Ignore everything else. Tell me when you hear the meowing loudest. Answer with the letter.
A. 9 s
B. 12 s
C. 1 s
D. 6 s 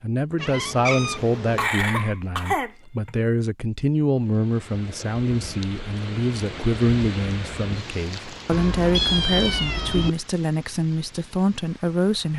A.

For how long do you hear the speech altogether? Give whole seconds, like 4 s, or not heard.
12 s.